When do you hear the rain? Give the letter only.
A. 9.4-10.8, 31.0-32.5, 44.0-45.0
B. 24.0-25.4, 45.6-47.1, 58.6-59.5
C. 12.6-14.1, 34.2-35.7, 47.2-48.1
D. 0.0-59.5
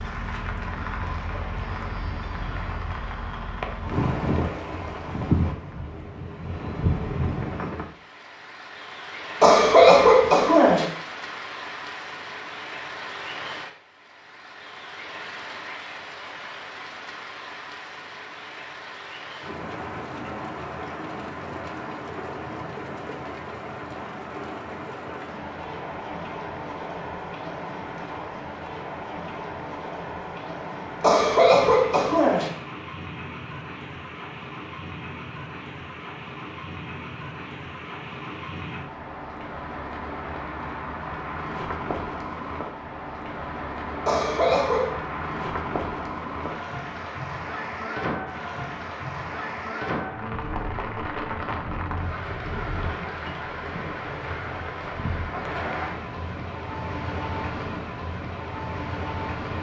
D.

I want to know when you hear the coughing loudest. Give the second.
10 s.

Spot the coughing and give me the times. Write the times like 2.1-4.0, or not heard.
9.4-10.8, 31.0-32.5, 44.0-45.0.